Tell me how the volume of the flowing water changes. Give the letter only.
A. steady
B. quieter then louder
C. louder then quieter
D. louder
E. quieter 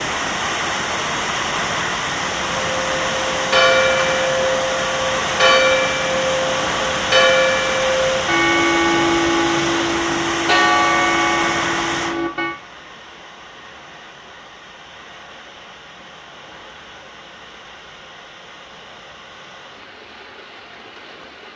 E.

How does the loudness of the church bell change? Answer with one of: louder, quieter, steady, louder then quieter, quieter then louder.
steady.